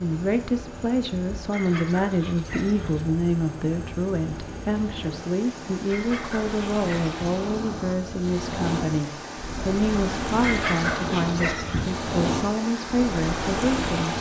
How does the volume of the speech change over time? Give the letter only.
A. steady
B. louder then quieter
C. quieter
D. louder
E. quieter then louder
A.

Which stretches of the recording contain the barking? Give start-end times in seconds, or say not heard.
1.5-3.0, 5.8-7.2, 10.4-11.9.